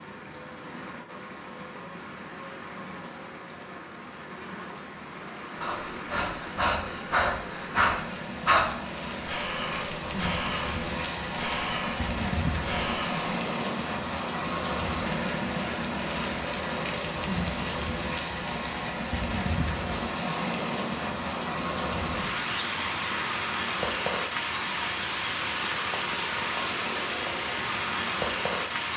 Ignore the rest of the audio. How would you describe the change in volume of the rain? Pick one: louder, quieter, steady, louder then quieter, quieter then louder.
louder.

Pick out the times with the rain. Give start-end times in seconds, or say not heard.
0.0-28.9.